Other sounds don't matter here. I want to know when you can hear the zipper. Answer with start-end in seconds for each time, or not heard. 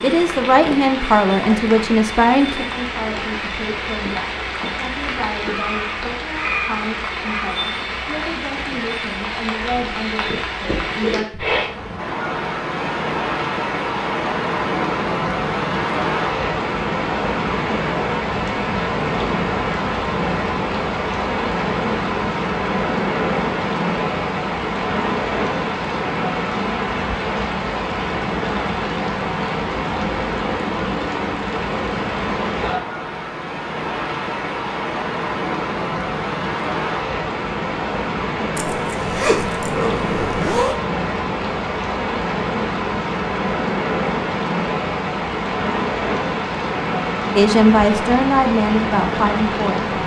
38.5-40.8.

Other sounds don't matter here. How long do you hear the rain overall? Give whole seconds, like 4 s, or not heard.
50 s.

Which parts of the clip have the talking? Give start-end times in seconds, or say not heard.
0.0-11.2, 47.4-49.9.